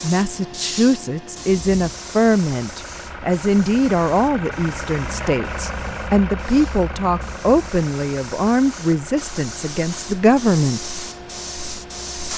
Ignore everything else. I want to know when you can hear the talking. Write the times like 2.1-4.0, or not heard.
0.0-10.8.